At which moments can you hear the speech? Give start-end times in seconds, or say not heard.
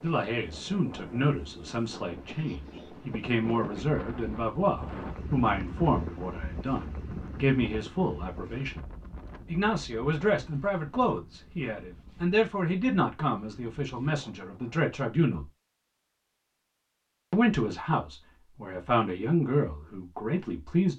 0.0-15.5, 17.3-20.9.